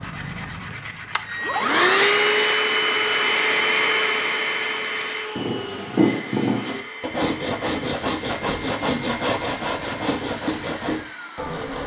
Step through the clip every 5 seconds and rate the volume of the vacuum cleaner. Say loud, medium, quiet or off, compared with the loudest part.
loud, quiet, quiet.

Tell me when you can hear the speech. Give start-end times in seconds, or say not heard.
not heard.